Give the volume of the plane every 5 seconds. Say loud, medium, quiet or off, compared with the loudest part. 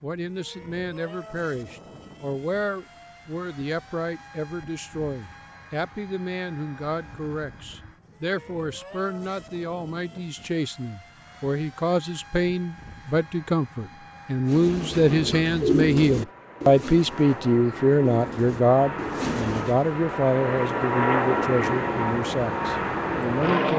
quiet, quiet, quiet, medium, loud.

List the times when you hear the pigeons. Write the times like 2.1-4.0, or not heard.
14.4-19.8.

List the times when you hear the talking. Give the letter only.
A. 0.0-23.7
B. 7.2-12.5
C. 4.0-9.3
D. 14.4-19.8
A.